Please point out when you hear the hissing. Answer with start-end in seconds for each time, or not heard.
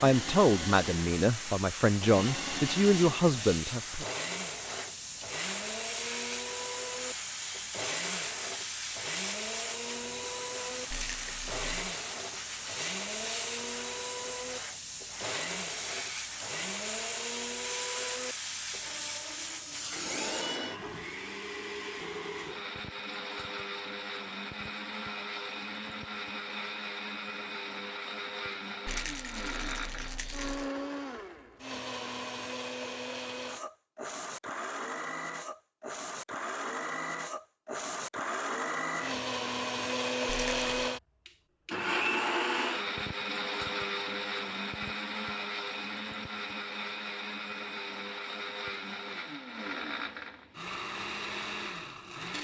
0.0-20.6.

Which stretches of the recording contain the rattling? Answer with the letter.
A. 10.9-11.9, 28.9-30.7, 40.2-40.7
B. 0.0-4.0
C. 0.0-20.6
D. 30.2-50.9
A.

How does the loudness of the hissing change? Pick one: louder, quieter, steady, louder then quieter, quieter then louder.
steady.